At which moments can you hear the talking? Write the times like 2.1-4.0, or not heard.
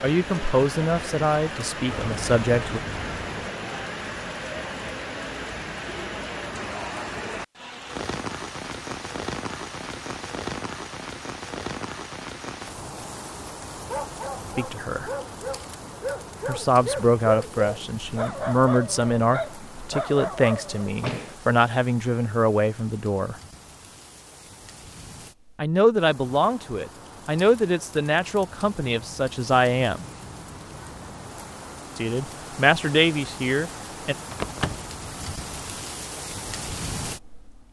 0.0-2.8, 14.6-15.1, 16.4-23.4, 25.6-30.1, 31.9-34.1.